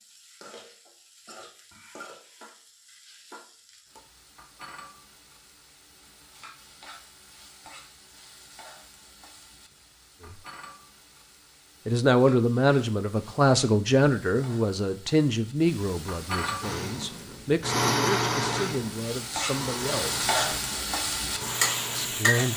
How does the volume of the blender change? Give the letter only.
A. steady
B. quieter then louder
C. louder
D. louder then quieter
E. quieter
E.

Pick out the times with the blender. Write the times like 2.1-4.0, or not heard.
16.6-22.4.